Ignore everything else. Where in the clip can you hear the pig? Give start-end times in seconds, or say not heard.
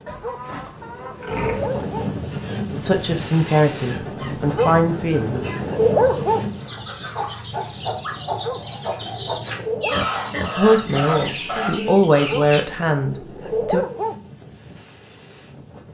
0.1-1.9, 9.9-11.7.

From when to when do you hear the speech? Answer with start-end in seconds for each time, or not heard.
2.7-5.5, 10.6-13.8.